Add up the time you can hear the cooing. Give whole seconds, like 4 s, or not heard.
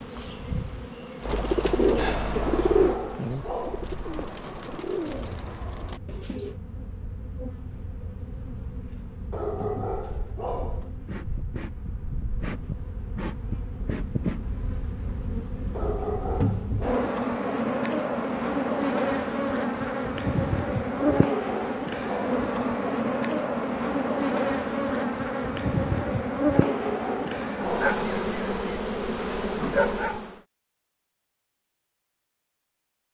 5 s.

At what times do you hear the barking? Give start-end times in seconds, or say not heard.
2.4-3.9, 9.3-10.9, 15.7-17.1, 20.9-22.4, 26.5-27.9.